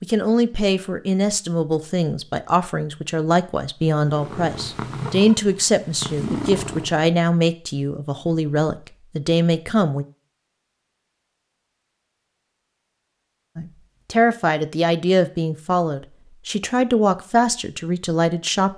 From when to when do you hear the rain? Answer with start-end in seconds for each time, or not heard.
not heard.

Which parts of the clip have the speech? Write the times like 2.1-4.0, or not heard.
0.0-10.1, 13.6-18.7.